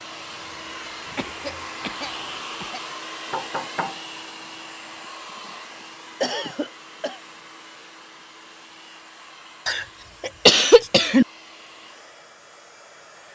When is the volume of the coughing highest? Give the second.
11 s.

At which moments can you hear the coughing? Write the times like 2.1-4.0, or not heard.
1.1-2.8, 6.2-7.2, 9.7-11.2.